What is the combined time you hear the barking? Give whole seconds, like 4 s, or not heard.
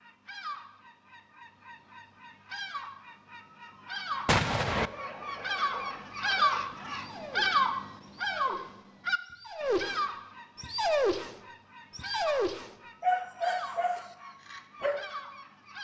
10 s.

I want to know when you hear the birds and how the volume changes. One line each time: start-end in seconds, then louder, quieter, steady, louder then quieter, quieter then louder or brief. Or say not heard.
0.0-15.7 louder then quieter.